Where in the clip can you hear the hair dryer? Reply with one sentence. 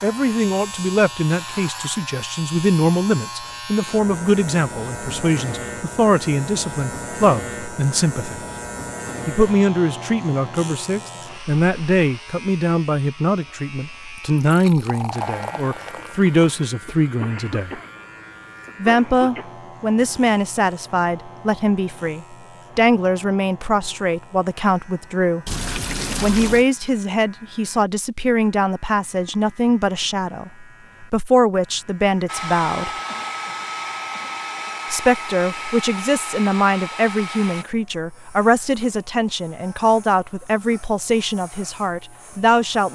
The hair dryer can be heard from 32.2 to 37.6 s.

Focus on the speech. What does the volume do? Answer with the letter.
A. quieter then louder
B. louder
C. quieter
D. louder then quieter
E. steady
E.